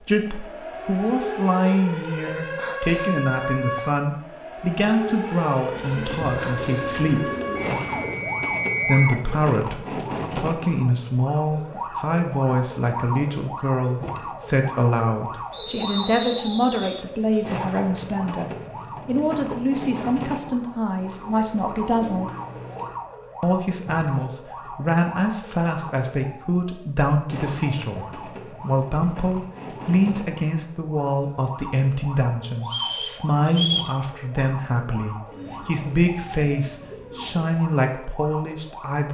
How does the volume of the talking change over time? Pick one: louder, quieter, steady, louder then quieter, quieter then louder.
steady.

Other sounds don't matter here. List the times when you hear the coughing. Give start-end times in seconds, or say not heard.
not heard.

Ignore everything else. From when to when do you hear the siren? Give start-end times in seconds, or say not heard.
0.0-39.0.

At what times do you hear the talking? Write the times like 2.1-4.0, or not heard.
0.1-7.3, 8.8-22.4, 23.4-39.1.